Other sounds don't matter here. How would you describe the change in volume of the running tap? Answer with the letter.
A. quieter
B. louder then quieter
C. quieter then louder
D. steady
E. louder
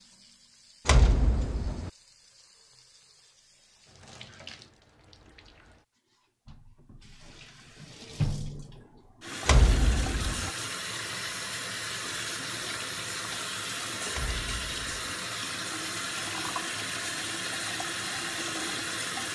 E.